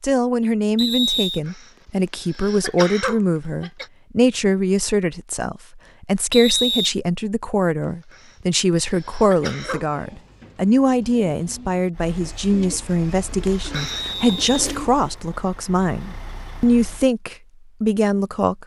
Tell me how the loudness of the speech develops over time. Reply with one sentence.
The loudness of the speech stays about the same.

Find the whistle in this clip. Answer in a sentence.
The whistle can be heard from 0.8 to 1.4 s, from 6.3 to 6.9 s and from 13.8 to 14.4 s.